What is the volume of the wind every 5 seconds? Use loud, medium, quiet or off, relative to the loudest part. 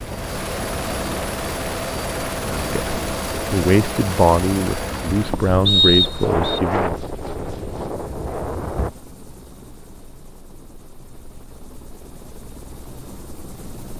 medium, loud, off.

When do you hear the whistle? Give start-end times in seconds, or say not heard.
5.7-6.6.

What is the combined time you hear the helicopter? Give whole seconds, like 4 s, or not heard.
14 s.